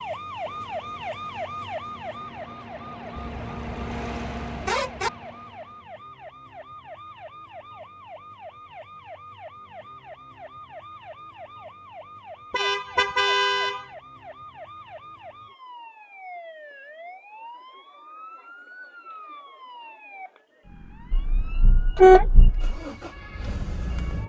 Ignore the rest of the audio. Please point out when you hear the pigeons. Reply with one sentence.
The pigeons can't be heard in this clip.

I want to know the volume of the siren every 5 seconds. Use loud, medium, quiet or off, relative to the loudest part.
loud, medium, medium, medium, quiet.